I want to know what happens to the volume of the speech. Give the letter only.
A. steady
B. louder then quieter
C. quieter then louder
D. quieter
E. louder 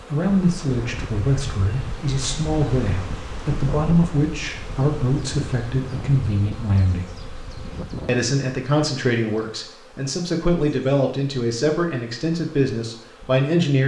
A.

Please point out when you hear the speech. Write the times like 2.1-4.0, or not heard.
0.1-7.1, 8.1-13.8.